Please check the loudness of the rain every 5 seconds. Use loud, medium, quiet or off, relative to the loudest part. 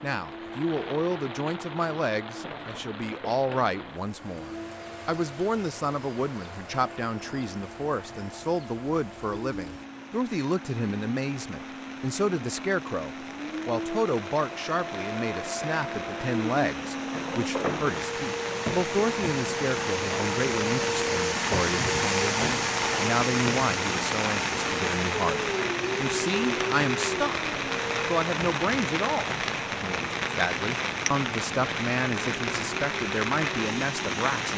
quiet, quiet, quiet, medium, loud, loud, loud.